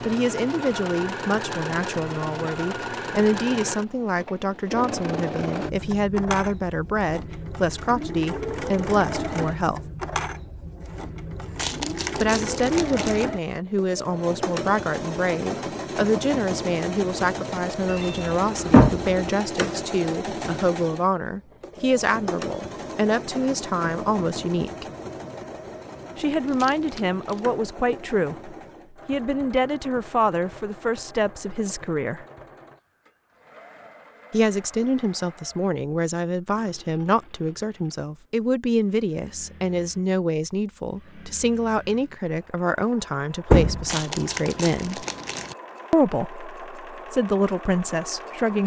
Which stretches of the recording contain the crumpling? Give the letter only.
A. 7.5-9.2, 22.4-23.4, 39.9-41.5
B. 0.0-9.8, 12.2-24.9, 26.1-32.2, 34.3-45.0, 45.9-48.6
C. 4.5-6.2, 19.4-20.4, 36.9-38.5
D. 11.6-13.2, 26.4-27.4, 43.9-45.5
D.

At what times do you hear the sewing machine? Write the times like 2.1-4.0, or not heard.
0.0-48.6.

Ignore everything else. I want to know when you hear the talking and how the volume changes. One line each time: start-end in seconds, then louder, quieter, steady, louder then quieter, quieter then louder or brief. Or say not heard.
0.0-9.8 steady
12.2-24.9 steady
26.1-32.2 steady
34.3-45.0 steady
45.9-48.6 brief.